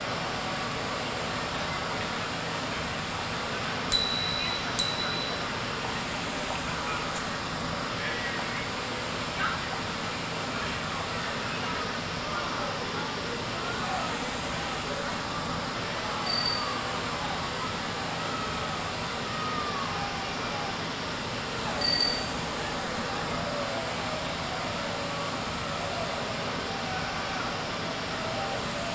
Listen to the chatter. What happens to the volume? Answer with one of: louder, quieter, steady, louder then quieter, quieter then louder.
steady.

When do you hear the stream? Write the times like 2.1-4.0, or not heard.
0.0-28.9.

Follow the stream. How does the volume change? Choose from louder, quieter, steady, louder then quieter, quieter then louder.
steady.